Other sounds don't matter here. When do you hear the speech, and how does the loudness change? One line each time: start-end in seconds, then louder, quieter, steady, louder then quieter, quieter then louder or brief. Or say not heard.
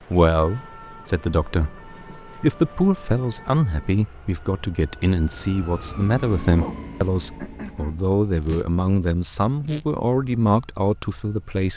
0.1-11.7 steady.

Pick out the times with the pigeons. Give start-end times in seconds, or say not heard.
not heard.